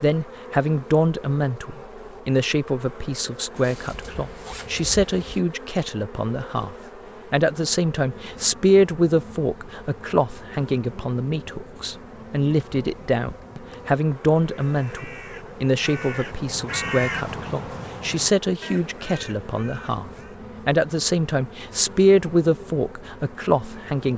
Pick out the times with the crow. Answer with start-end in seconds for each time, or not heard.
14.3-20.4.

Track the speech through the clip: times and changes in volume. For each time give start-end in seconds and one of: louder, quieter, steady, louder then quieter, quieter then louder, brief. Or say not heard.
0.0-24.1 steady.